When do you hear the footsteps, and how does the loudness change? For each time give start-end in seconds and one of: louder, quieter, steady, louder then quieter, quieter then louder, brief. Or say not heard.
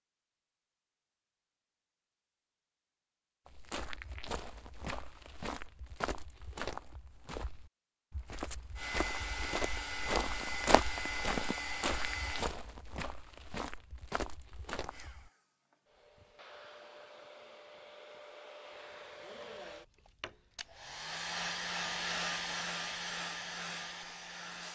3.5-15.3 louder then quieter.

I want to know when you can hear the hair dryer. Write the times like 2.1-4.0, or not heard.
8.8-12.6, 14.8-24.7.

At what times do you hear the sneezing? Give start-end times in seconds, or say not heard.
not heard.